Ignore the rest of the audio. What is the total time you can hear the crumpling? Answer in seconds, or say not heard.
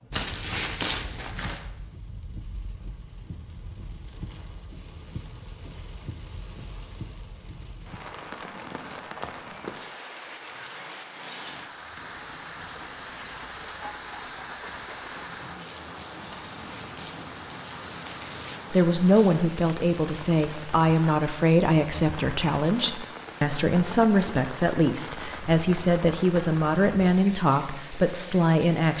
4 s.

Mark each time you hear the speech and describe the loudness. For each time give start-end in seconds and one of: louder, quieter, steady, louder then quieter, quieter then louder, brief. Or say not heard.
18.7-28.9 steady.